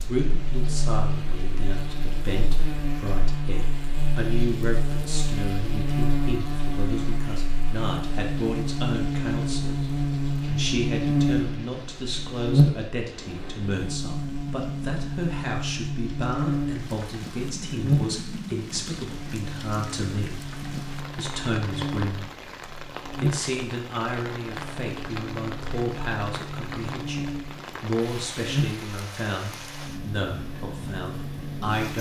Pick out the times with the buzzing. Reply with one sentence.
You can hear the buzzing from 0.0 to 31.9 s.